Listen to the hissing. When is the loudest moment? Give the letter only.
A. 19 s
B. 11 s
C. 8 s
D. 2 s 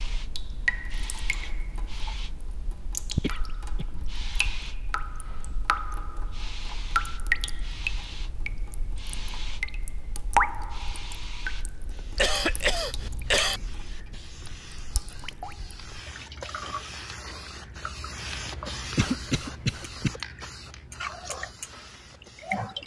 A.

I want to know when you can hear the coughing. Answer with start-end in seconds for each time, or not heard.
3.2-3.9, 12.2-13.6, 18.9-20.1.